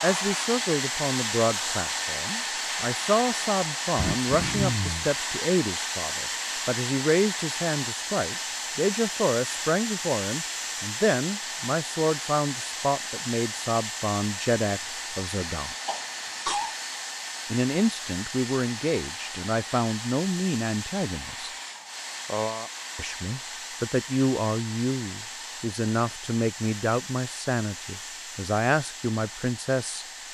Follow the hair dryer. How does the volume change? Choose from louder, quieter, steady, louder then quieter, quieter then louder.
quieter.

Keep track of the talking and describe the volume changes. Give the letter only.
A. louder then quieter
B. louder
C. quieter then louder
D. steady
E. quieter
D.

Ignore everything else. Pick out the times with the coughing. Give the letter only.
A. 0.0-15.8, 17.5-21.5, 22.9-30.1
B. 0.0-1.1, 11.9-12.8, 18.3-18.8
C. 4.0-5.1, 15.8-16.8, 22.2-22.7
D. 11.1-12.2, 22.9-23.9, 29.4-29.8
C.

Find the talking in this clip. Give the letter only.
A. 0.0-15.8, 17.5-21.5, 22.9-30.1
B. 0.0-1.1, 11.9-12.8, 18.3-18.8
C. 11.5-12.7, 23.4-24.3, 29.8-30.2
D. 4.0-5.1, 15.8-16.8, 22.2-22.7
A.